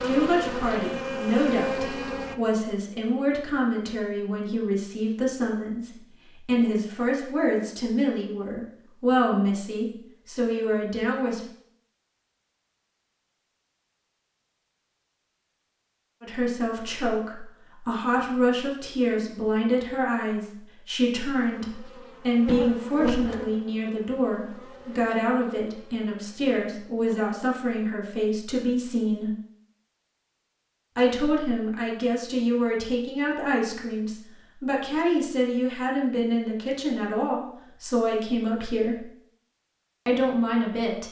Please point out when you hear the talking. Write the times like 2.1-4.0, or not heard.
0.0-11.4, 16.2-29.3, 30.9-39.0, 40.0-41.0.